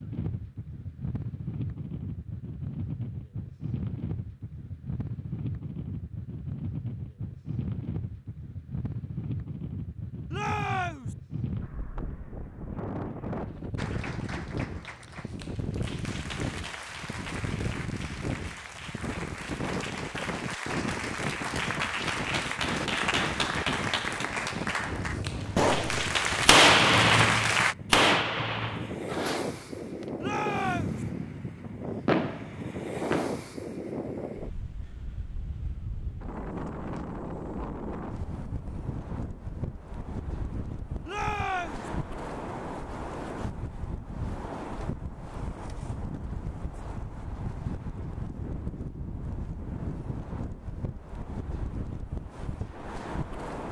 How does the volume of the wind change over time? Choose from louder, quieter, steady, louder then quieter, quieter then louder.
steady.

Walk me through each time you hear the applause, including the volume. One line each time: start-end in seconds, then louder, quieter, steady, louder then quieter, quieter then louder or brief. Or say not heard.
13.8-27.8 louder.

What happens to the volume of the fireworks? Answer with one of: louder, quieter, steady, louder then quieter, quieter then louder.
quieter then louder.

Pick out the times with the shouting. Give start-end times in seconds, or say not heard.
10.3-11.2, 30.2-31.1, 41.0-41.9.